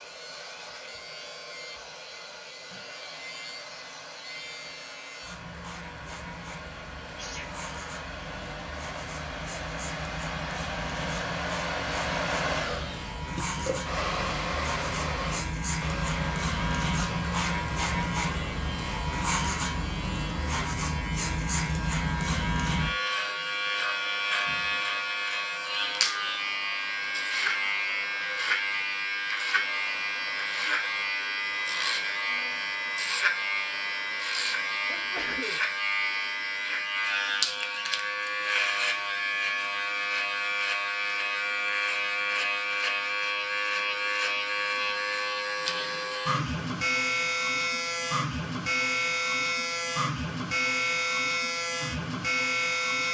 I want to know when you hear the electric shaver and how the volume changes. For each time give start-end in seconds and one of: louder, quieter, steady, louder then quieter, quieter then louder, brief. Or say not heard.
0.0-53.0 louder.